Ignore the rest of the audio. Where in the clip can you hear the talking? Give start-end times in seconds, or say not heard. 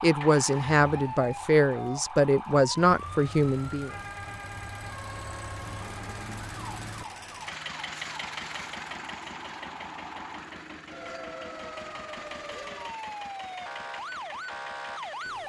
0.0-3.9.